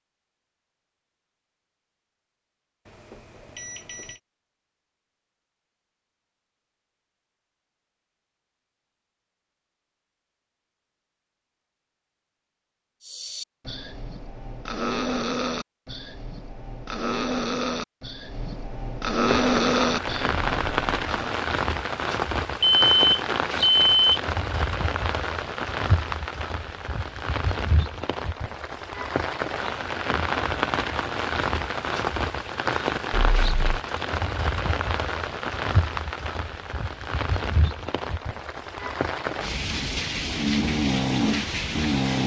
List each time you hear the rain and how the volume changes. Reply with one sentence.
The rain can be heard from 19.2 to 42.2 s, at a steady volume.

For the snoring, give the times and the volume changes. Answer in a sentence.
The snoring can be heard from 13.0 to 21.4 s, getting louder; and briefly from 40.2 to 42.2 s.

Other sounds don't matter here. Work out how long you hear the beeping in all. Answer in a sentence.
The beeping can be heard for 4 seconds in total.